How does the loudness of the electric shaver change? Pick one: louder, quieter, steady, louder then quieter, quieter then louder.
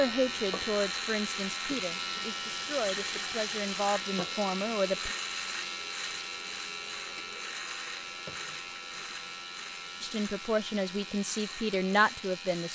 quieter.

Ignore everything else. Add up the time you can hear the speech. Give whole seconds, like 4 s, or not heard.
8 s.